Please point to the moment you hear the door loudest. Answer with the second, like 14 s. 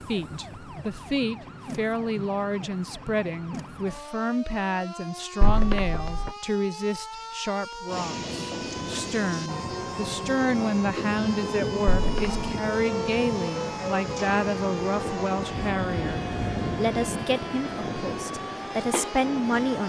6 s.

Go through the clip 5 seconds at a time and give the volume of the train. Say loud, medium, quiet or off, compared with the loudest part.
off, loud, loud, loud.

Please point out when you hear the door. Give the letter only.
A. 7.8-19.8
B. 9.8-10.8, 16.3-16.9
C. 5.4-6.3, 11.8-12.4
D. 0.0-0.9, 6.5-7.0
C.